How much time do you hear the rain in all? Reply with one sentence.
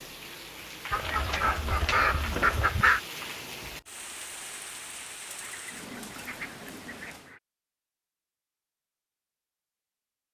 The rain can be heard for 7 seconds in total.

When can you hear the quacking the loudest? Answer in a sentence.
The loudest moment of the quacking is at 3 seconds.